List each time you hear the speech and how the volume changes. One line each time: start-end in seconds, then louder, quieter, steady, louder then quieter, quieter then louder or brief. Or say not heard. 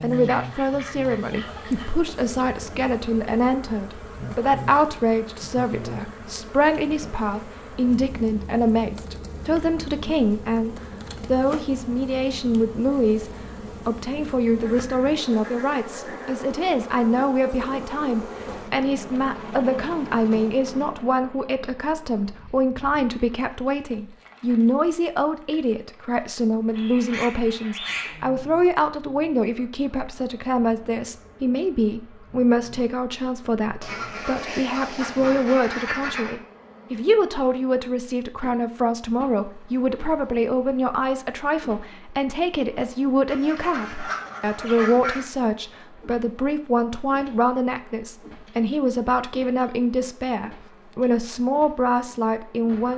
0.0-52.9 steady.